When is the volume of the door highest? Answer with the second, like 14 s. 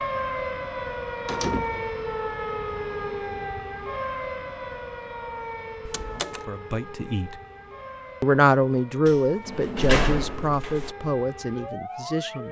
10 s.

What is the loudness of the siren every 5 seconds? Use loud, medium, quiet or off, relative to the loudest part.
loud, medium, medium.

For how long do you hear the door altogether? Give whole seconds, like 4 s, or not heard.
3 s.